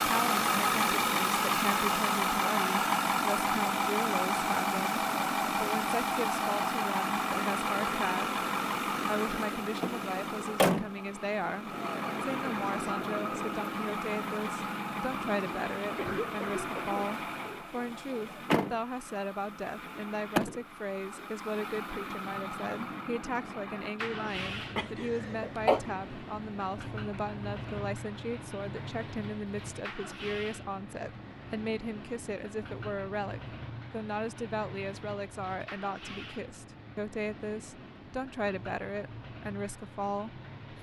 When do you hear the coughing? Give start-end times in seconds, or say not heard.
15.9-17.6, 24.8-25.8.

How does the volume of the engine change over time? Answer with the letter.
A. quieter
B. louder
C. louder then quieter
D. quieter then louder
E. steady
A.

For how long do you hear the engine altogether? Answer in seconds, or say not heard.
41 s.